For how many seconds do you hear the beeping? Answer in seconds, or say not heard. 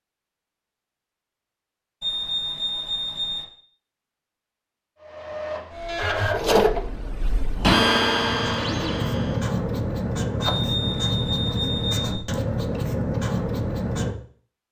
3 s.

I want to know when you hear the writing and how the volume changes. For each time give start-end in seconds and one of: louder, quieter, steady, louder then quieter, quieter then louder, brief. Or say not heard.
8.1-14.2 steady.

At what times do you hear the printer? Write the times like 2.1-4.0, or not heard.
5.0-9.5.